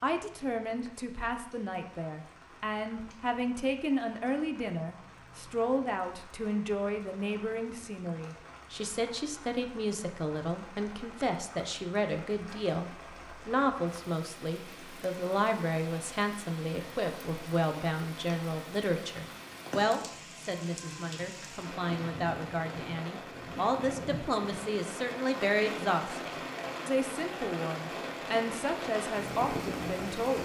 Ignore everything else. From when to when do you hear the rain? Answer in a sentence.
The rain can be heard from 0.0 to 30.4 s.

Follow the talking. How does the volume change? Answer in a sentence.
The volume of the talking stays about the same.